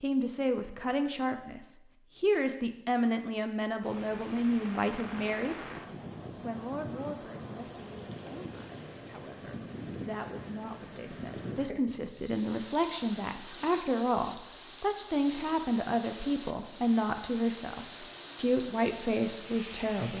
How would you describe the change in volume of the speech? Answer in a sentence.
The loudness of the speech goes down, then up.